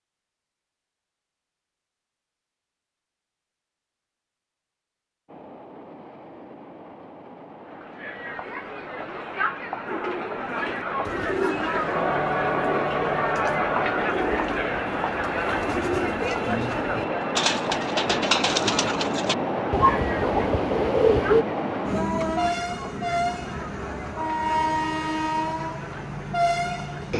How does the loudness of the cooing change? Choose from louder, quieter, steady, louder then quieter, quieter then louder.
louder.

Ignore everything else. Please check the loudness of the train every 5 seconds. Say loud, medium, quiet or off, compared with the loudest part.
off, quiet, medium, loud, loud, loud.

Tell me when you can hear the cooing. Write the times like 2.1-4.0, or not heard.
9.8-21.4.